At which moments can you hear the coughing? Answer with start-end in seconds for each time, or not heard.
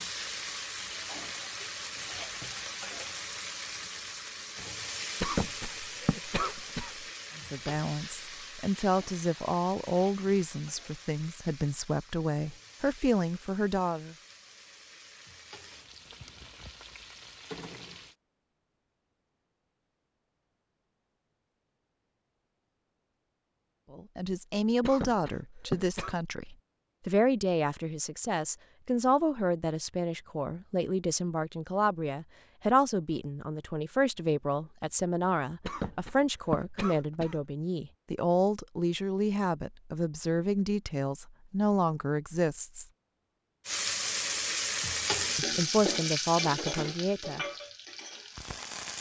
5.2-7.0, 24.8-26.1, 35.6-37.5.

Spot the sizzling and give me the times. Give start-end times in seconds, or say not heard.
0.0-18.1, 43.6-48.9.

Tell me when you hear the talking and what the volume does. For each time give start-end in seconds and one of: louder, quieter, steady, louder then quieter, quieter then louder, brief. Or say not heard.
7.3-14.2 steady
23.9-42.9 steady
45.4-47.5 brief.